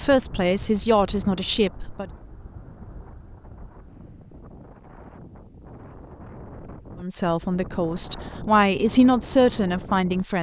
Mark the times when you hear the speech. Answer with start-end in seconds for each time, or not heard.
0.0-2.0, 7.0-10.3.